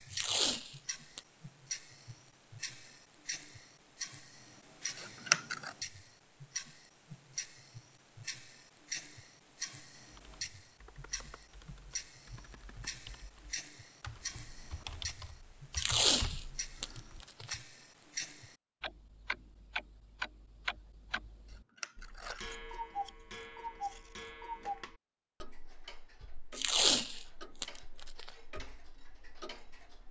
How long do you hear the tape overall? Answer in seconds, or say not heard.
4 s.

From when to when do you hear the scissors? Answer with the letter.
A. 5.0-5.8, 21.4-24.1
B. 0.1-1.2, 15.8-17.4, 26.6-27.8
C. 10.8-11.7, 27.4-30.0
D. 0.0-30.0
A.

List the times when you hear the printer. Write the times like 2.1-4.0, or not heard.
not heard.